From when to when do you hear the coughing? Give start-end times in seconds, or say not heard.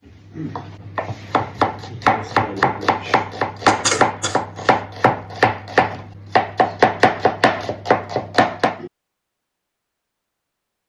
3.6-4.8.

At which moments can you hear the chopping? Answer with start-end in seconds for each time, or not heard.
0.3-8.9.